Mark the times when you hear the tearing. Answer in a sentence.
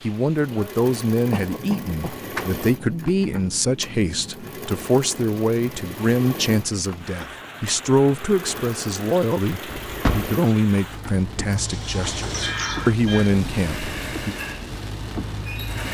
You can't hear the tearing here.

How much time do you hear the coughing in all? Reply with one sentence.
The coughing can be heard for 2 seconds in total.